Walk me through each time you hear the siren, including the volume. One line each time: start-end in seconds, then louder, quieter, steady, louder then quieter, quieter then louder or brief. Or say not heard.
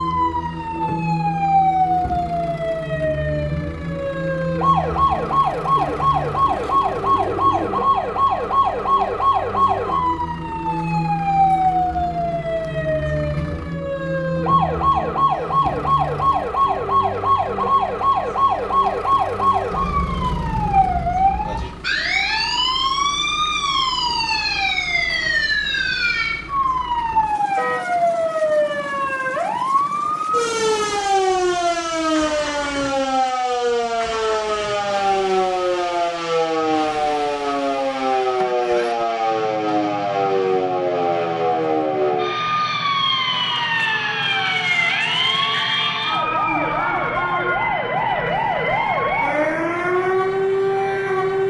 0.0-51.4 steady.